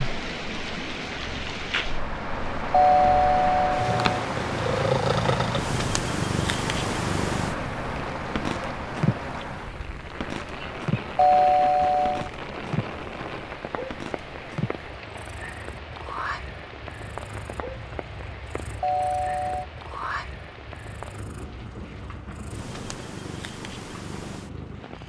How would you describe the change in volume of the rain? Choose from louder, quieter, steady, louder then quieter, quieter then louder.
quieter.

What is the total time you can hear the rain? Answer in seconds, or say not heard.
25 s.